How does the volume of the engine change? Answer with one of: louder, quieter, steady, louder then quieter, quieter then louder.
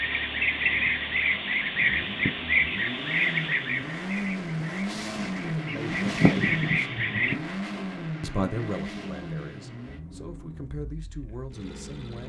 louder then quieter.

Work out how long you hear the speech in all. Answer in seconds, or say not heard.
5 s.